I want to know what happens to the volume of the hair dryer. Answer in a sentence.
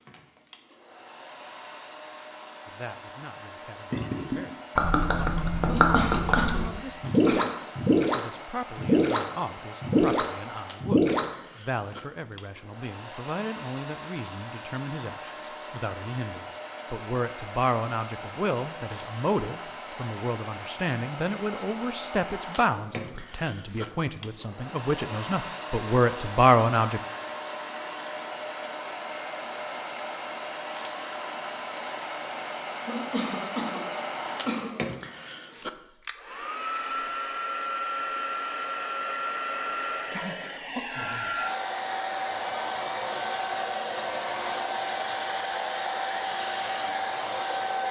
The volume of the hair dryer goes up.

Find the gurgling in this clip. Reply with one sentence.
The gurgling can be heard from 3.9 to 11.4 s.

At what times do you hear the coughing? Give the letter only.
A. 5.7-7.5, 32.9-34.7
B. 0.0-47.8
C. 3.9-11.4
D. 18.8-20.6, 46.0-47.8
A.